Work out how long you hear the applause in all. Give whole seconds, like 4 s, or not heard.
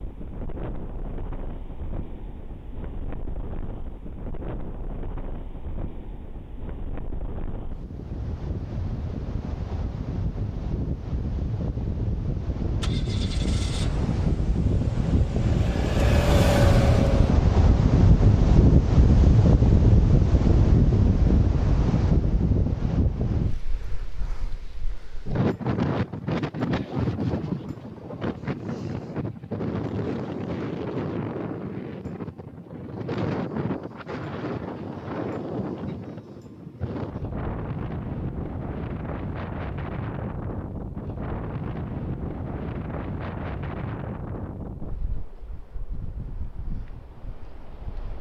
not heard.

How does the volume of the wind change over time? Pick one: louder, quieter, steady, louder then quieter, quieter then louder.
louder then quieter.